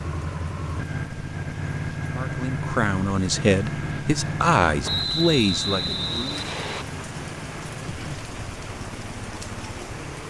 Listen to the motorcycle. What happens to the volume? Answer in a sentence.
The loudness of the motorcycle goes down.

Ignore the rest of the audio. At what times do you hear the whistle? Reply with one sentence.
The whistle can be heard from 4.8 to 6.8 s.